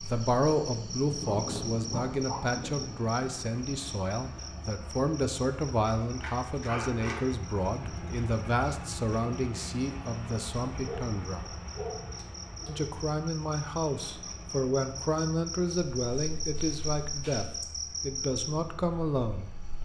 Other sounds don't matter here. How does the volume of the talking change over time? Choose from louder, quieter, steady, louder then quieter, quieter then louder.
steady.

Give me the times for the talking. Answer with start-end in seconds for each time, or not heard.
0.0-11.5, 12.7-19.6.